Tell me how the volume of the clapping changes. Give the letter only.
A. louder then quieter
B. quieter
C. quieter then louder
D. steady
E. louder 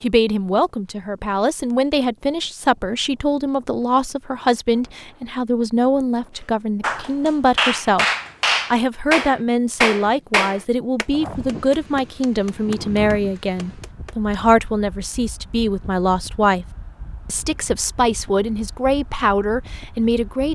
C.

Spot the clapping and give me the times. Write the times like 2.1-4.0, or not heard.
6.8-14.2.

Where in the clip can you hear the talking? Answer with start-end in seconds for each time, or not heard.
0.0-8.1, 8.7-16.6, 17.2-20.4.